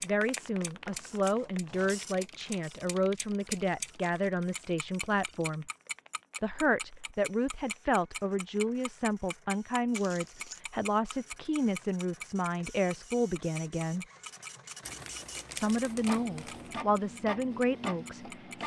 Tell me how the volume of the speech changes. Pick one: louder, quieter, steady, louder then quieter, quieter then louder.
steady.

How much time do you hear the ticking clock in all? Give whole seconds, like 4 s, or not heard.
18 s.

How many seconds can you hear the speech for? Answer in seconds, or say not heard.
16 s.